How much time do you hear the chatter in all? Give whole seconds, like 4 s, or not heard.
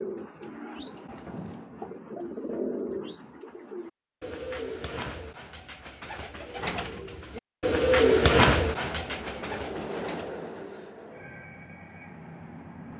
not heard.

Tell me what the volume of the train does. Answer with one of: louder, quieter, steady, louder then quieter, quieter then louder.
quieter.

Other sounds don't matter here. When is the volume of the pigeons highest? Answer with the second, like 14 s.
8 s.